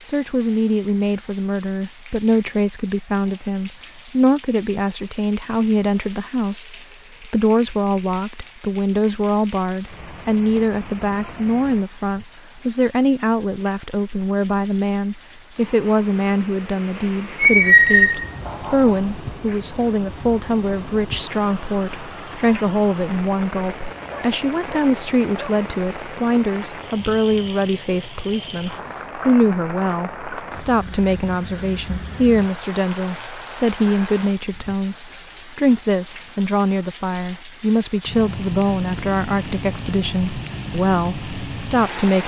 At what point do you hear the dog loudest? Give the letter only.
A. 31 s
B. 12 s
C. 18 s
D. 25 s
C.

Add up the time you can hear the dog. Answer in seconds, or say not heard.
3 s.